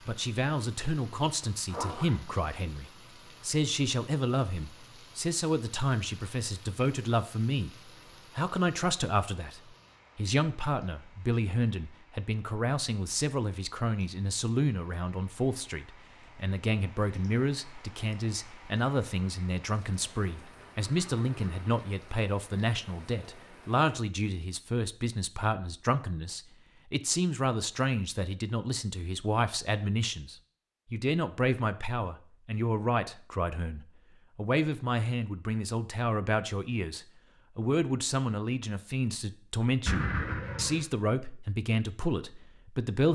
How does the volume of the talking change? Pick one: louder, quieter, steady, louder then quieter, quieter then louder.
steady.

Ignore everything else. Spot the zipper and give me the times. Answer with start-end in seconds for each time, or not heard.
1.6-2.2, 20.4-21.9, 39.9-40.9.